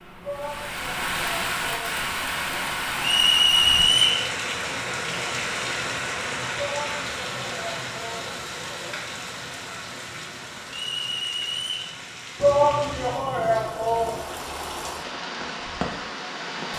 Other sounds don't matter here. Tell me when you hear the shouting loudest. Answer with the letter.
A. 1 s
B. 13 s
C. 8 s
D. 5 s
B.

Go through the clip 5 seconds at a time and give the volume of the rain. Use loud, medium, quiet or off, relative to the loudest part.
loud, loud, medium, loud.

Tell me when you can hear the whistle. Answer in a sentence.
You can hear the whistle from 3.0 to 4.2 s and from 10.7 to 11.9 s.